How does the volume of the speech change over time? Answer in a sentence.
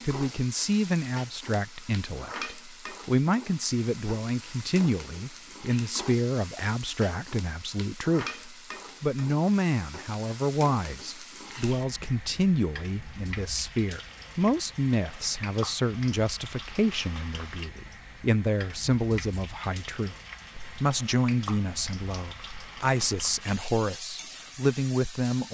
The loudness of the speech stays about the same.